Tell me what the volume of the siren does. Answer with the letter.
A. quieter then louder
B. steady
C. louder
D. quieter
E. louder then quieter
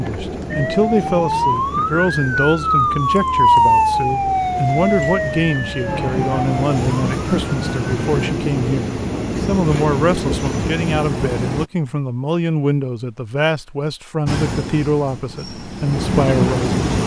E.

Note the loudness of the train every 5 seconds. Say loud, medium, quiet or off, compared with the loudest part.
medium, loud, loud, loud.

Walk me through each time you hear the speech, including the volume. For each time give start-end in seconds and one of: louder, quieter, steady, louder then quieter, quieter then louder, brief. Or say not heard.
0.0-17.0 steady.